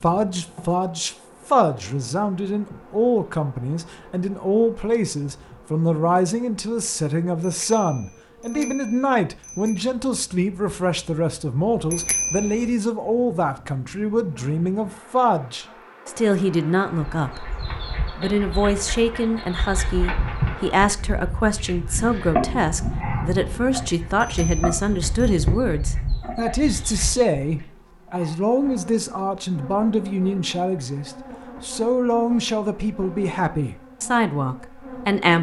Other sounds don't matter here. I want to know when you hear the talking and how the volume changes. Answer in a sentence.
You can hear the talking from 0.0 to 17.5 s, at a steady volume; and from 18.1 to 35.3 s, at a steady volume.